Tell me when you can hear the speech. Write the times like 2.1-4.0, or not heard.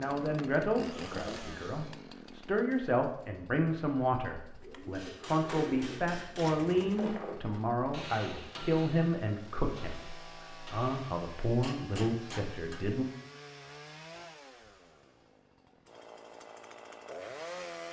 0.0-13.1.